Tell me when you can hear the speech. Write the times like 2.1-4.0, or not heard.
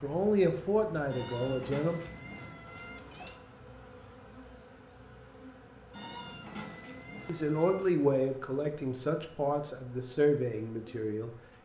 0.0-2.0, 7.2-11.3.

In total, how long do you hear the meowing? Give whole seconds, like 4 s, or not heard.
4 s.